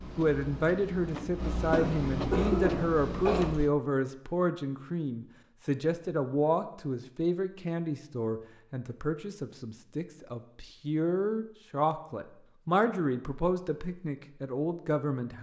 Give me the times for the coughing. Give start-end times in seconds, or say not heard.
1.7-3.5.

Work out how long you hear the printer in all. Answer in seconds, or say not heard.
4 s.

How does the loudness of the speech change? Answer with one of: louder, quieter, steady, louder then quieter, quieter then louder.
steady.